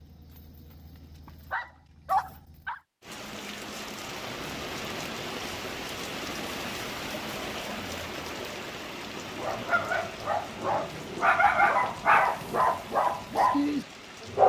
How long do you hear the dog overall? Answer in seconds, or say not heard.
8 s.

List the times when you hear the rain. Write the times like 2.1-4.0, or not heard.
3.0-14.4.